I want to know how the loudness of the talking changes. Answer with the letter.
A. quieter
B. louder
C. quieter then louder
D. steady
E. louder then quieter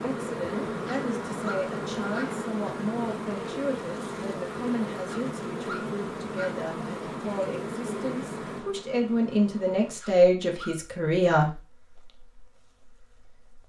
B.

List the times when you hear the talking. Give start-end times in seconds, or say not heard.
0.0-11.6.